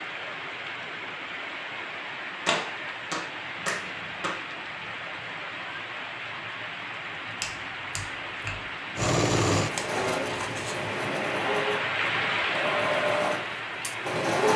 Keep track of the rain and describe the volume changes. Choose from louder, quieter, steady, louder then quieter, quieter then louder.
louder.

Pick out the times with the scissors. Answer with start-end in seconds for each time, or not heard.
9.6-10.8.